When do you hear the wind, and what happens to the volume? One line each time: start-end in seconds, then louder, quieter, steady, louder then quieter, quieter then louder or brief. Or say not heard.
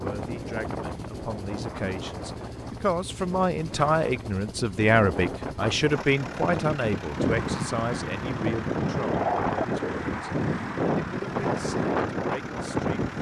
0.0-13.1 louder.